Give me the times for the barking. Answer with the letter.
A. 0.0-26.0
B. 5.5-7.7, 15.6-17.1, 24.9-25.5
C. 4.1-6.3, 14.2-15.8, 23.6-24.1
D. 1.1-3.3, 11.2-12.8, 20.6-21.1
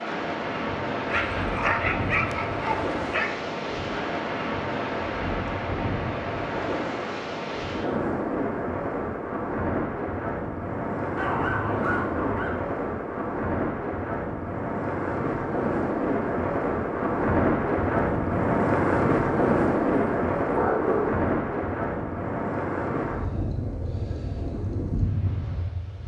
D.